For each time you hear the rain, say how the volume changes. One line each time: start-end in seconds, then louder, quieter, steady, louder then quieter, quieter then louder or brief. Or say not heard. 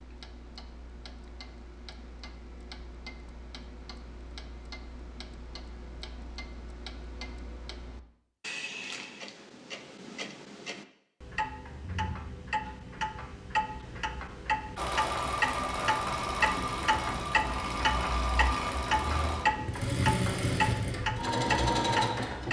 not heard.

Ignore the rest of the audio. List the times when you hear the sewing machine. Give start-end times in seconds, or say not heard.
14.8-22.4.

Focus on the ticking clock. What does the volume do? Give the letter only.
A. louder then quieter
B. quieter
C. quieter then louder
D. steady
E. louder
E.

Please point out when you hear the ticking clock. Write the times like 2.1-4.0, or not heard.
0.0-22.4.